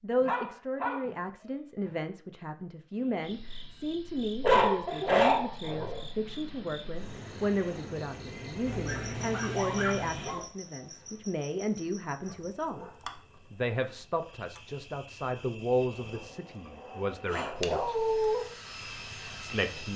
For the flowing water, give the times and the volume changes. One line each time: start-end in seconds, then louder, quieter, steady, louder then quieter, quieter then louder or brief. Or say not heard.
not heard.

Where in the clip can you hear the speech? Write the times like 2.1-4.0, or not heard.
0.0-12.8, 13.5-17.9, 19.4-19.9.